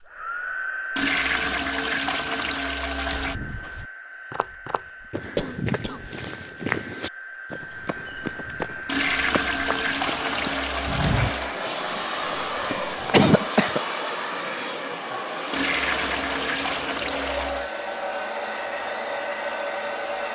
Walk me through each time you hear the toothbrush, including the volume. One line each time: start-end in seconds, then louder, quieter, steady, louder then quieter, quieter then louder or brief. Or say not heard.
not heard.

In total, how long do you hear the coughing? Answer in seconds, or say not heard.
2 s.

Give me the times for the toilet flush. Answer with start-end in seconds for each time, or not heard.
0.9-3.4, 8.8-11.6, 15.5-17.7.